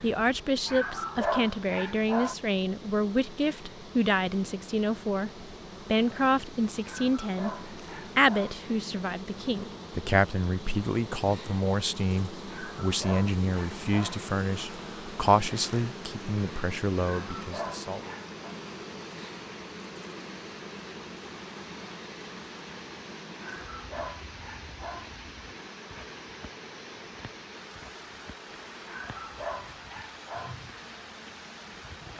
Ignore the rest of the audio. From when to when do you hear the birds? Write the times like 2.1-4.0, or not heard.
not heard.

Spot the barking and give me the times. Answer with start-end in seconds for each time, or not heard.
0.7-2.4, 6.8-8.6, 12.4-14.2, 17.0-18.6, 23.4-25.1, 28.9-30.6.